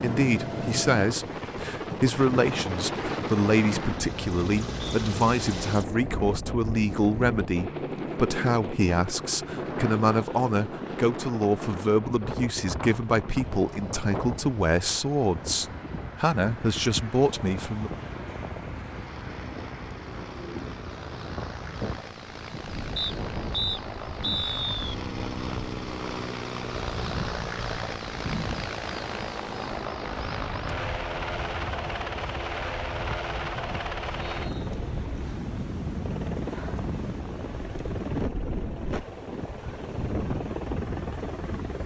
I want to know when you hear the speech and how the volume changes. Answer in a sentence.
The speech can be heard from 0.0 to 17.9 s, at a steady volume.